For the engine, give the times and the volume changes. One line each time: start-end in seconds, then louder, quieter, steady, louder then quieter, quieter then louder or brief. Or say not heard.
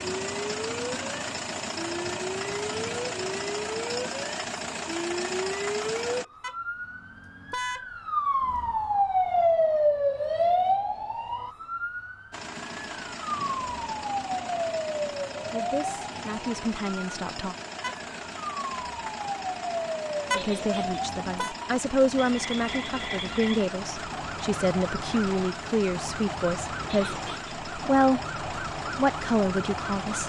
0.0-6.2 steady
12.3-30.2 steady.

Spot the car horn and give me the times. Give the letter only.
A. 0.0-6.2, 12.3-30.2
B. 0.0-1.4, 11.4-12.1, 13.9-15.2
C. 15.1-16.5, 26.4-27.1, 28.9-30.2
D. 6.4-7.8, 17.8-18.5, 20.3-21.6
D.